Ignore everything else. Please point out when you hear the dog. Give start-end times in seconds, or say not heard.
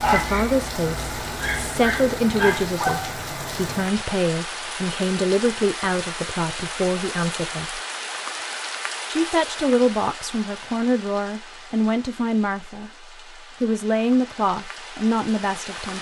0.0-3.1.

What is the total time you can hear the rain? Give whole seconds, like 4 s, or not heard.
16 s.